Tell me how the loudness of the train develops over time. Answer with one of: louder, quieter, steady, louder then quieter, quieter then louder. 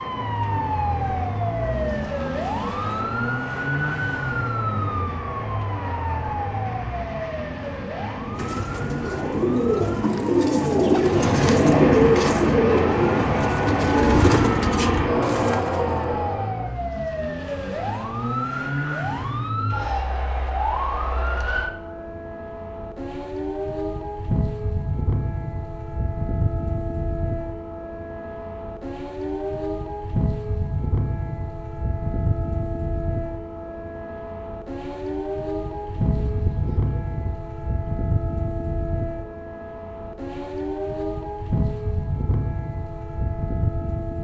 louder.